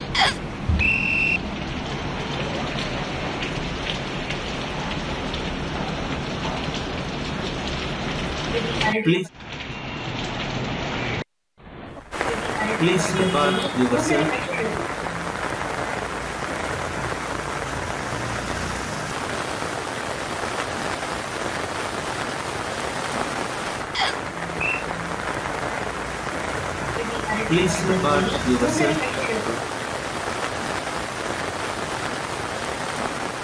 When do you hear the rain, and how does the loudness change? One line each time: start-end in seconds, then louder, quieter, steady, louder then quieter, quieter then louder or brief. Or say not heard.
0.0-33.3 steady.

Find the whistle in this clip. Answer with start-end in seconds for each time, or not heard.
0.1-1.4, 23.9-24.9.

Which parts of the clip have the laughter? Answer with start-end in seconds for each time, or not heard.
8.5-9.3, 12.2-14.9, 26.9-29.6.